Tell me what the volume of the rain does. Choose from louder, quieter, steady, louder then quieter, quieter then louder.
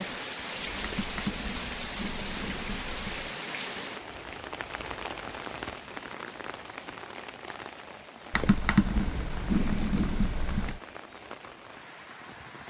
quieter.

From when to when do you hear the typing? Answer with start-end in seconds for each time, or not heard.
0.8-3.3, 8.3-10.8.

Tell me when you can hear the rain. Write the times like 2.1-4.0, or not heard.
0.0-12.6.